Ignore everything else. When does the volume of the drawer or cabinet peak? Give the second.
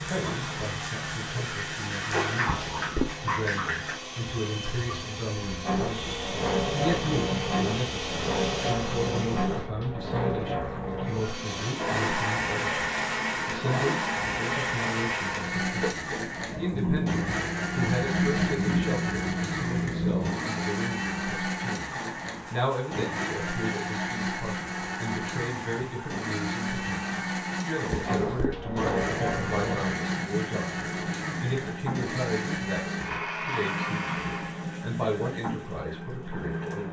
3 s.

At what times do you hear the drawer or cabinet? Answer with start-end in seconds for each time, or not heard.
2.5-3.1, 27.9-28.6.